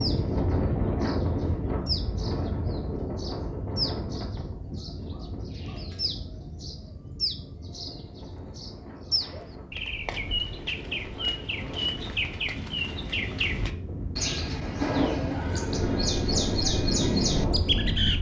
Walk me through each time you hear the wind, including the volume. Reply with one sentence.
You can hear the wind from 0.0 to 18.1 s, getting quieter then louder.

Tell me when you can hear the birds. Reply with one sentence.
The birds can be heard from 0.0 to 18.1 s.